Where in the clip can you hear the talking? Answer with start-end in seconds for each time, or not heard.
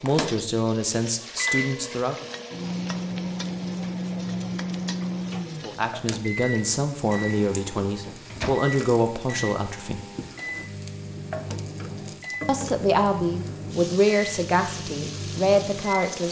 0.0-2.1, 5.6-10.0, 12.4-16.2.